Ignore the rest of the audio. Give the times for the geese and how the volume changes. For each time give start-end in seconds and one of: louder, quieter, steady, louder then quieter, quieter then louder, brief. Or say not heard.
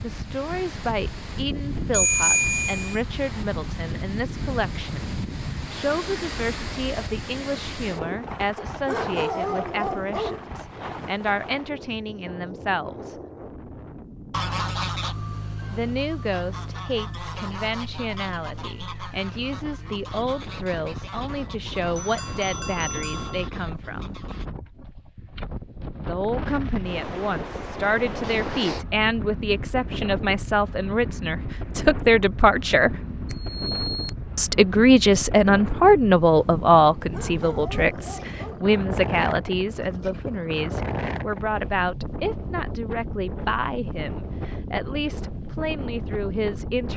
14.3-24.5 quieter.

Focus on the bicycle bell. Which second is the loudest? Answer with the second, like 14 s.
2 s.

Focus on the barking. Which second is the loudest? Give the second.
9 s.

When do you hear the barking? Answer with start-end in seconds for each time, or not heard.
8.6-10.6, 37.0-38.6.